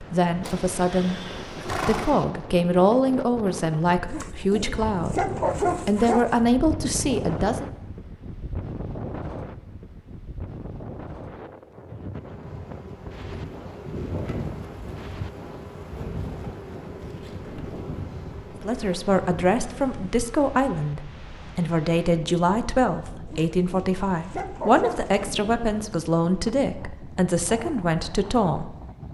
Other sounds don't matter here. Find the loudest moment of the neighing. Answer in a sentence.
The volume of the neighing peaks at 2 seconds.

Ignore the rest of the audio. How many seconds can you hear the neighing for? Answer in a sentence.
The neighing can be heard for 2 seconds in total.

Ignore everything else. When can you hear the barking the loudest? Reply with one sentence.
The volume of the barking peaks at 6 seconds.